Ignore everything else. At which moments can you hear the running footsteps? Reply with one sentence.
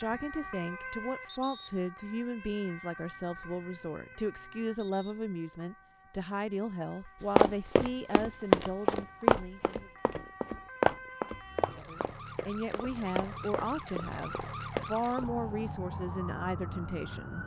You can hear the running footsteps from 7.3 to 15.3 s.